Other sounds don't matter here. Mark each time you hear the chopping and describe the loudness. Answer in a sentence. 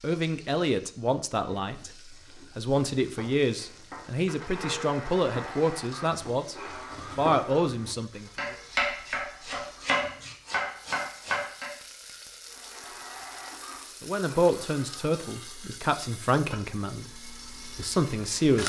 The chopping can be heard from 1.4 to 11.7 s, getting louder.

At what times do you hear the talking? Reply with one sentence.
You can hear the talking from 0.0 to 6.5 s, from 7.2 to 8.3 s and from 14.0 to 18.6 s.